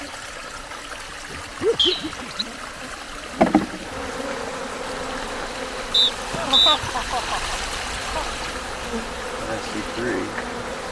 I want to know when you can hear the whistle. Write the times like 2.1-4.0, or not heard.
1.8-2.5, 5.9-6.8.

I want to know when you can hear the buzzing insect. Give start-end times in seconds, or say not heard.
0.0-10.8.